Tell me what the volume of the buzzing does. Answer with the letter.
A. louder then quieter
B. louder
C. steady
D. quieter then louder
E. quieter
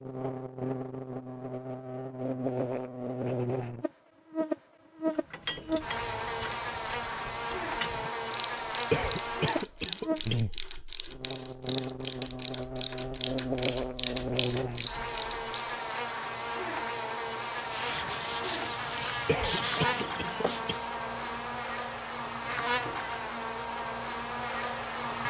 C.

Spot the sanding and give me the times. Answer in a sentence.
You can hear the sanding from 17.5 to 20.9 s.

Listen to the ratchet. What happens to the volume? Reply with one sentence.
The loudness of the ratchet goes up.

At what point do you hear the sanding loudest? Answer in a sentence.
The loudest moment of the sanding is at 20 seconds.